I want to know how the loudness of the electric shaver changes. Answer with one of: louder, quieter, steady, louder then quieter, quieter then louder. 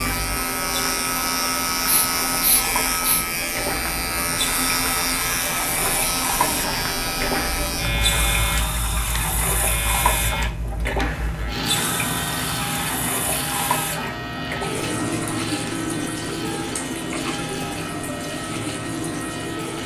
quieter.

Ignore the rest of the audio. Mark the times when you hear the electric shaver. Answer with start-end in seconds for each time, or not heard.
0.0-19.8.